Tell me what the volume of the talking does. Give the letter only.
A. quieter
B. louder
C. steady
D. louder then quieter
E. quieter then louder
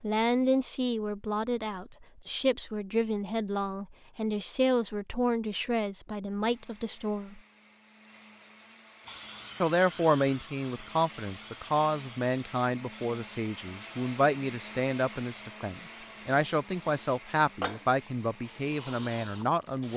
C.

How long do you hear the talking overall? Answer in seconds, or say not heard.
18 s.